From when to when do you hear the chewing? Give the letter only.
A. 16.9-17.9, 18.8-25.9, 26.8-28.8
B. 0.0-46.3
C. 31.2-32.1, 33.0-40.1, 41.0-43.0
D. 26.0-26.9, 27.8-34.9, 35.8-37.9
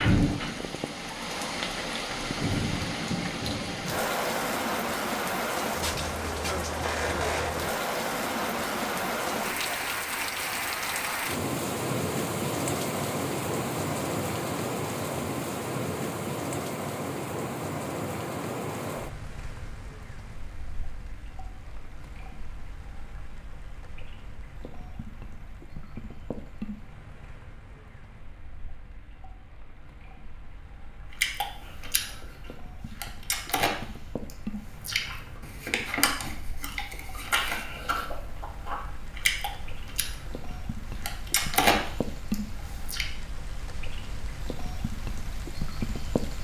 C.